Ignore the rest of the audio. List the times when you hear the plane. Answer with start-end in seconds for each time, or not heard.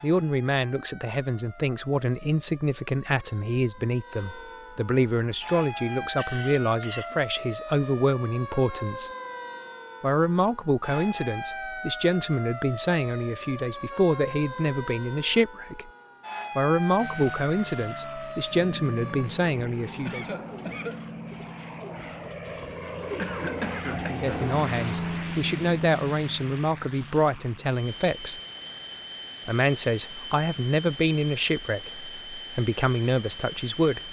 16.9-34.0.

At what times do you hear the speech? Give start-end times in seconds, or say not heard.
0.0-9.1, 10.0-15.9, 16.6-20.2, 24.1-28.4, 29.4-34.0.